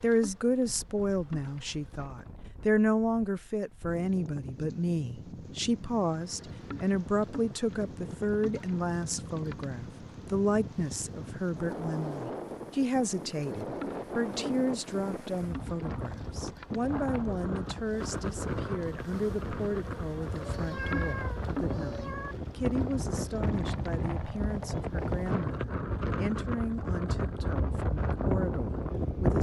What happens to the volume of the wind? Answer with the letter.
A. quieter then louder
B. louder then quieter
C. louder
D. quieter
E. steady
C.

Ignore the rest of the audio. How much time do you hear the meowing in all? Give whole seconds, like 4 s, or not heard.
2 s.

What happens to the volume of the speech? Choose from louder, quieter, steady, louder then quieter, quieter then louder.
quieter.